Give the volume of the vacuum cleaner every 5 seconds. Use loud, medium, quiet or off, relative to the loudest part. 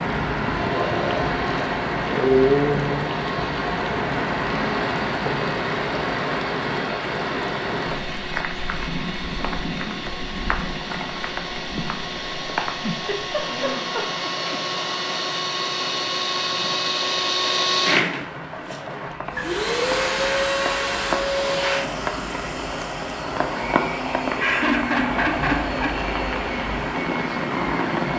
medium, medium, medium, loud, loud, medium.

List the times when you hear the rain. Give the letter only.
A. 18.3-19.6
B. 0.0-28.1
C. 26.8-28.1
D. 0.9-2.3
B.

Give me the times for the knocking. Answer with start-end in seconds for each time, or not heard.
18.3-19.6.